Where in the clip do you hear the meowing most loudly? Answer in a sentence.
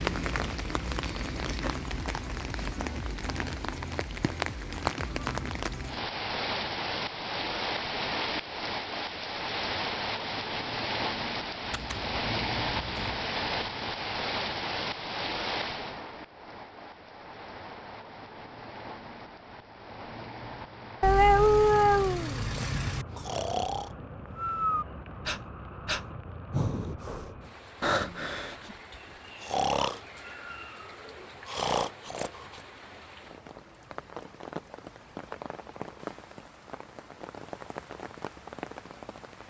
The loudest moment of the meowing is at 21 seconds.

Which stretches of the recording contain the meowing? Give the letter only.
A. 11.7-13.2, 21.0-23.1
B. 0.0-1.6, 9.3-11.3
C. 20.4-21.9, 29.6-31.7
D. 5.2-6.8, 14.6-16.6
A.